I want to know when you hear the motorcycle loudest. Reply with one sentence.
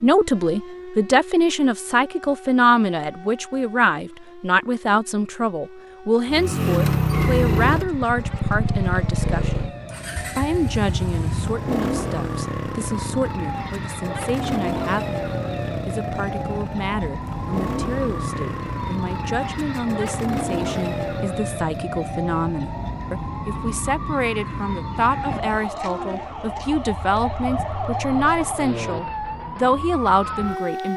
The loudest moment of the motorcycle is at 7 seconds.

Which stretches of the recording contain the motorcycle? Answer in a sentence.
You can hear the motorcycle from 6.3 to 21.4 s and from 26.9 to 28.6 s.